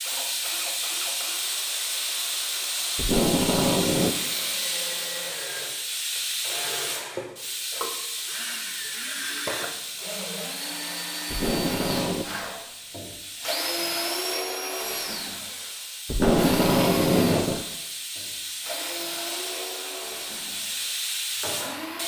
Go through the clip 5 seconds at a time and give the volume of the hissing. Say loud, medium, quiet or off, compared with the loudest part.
loud, loud, medium, medium, loud.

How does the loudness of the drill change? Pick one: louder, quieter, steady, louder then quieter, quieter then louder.
louder then quieter.